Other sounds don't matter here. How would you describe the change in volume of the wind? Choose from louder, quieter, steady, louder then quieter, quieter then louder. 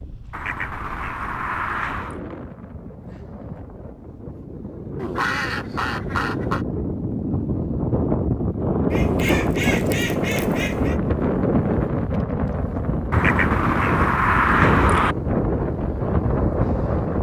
louder.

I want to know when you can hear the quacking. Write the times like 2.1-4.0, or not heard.
0.3-2.2, 5.0-6.7, 8.9-10.9, 13.1-15.2.